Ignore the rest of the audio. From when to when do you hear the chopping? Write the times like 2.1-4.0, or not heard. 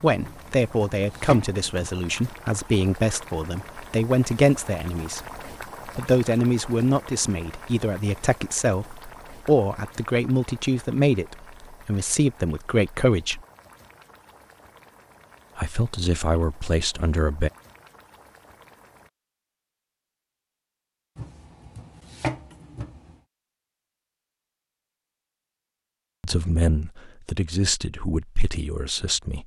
0.2-1.9, 21.1-23.1.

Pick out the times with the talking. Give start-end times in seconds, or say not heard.
0.0-5.2, 5.8-13.4, 15.6-17.5, 26.2-29.4.